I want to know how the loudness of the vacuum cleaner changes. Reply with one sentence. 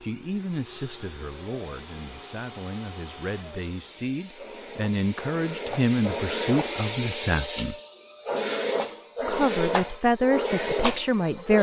The loudness of the vacuum cleaner goes up.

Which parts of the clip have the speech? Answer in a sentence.
The speech can be heard from 0.0 to 7.8 s and from 9.2 to 11.5 s.